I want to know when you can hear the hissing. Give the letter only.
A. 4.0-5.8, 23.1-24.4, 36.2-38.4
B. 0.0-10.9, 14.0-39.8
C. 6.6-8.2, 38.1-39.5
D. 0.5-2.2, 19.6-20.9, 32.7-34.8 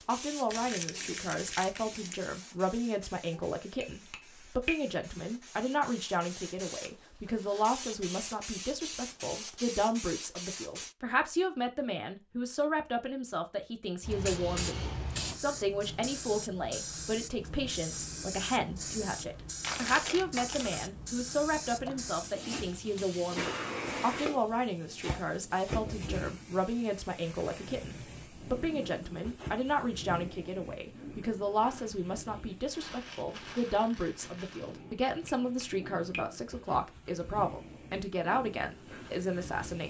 B.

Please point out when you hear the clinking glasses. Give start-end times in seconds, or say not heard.
3.3-4.8, 34.8-36.2.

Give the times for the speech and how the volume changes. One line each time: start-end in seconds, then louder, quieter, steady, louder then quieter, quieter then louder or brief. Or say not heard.
0.1-39.8 steady.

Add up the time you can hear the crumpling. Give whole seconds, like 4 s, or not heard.
5 s.